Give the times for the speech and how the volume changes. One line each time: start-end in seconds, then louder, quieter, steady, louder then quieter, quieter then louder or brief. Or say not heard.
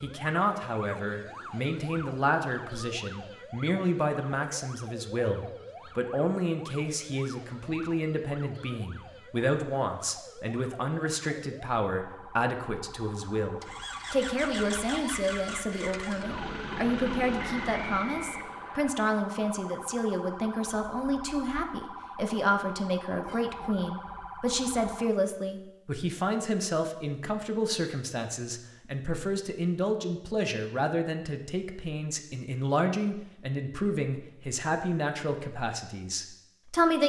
0.0-37.0 steady.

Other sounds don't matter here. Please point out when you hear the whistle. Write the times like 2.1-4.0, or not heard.
17.4-18.9.